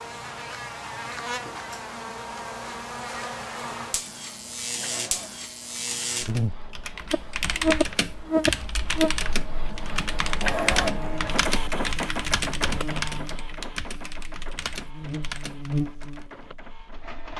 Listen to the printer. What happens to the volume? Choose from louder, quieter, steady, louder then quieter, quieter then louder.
louder then quieter.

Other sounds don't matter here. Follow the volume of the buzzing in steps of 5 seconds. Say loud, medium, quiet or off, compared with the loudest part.
medium, loud, quiet, medium.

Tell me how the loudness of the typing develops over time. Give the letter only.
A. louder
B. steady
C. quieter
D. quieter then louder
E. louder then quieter
C.